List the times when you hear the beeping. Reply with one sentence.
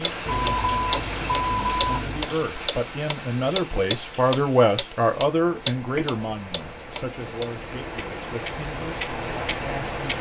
The beeping can be heard from 0.2 to 2.2 s and from 5.5 to 6.2 s.